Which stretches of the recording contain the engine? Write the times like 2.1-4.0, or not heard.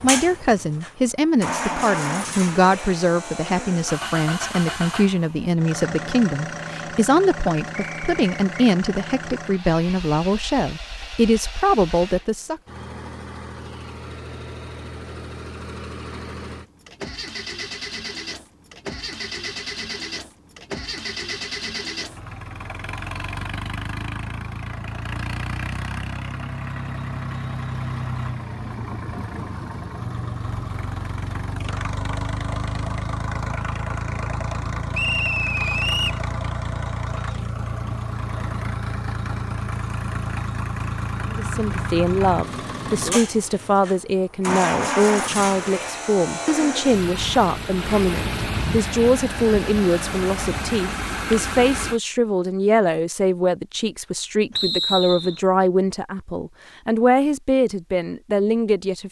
0.0-52.0.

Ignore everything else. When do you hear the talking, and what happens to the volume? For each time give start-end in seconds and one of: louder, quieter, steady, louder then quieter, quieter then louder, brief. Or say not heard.
0.0-12.6 steady
41.2-59.0 steady.